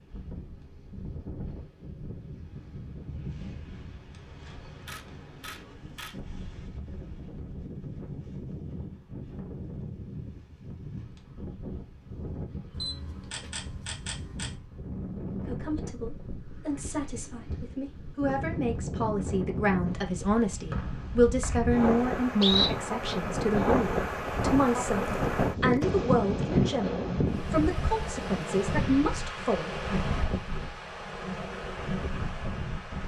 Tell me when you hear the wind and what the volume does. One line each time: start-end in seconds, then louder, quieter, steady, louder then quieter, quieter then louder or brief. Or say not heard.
0.0-33.0 louder.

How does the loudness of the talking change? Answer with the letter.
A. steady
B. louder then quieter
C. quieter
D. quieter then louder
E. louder
E.